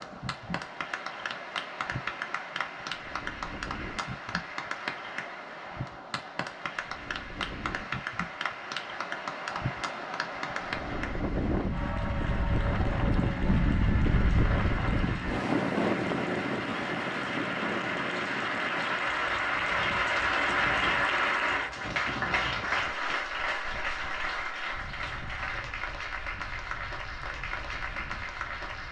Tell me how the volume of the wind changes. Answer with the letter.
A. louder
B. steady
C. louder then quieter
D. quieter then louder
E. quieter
C.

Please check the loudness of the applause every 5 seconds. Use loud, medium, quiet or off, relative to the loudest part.
medium, medium, medium, loud, loud, medium.